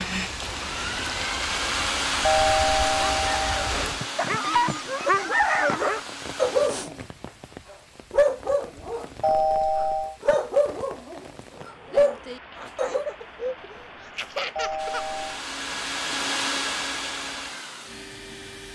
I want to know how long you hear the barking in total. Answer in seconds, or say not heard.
10 s.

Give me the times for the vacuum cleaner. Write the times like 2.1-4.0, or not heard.
0.1-6.7, 14.8-18.6.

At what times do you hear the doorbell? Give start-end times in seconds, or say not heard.
2.2-3.6, 9.2-10.2, 14.6-15.4.